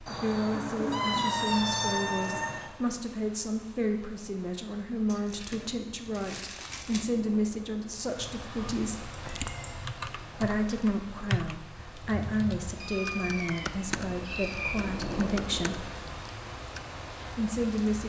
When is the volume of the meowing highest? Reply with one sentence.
The loudest moment of the meowing is at 1 second.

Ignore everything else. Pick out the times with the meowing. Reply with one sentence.
The meowing can be heard from 0.1 to 2.7 s, from 8.6 to 9.9 s and from 12.7 to 14.8 s.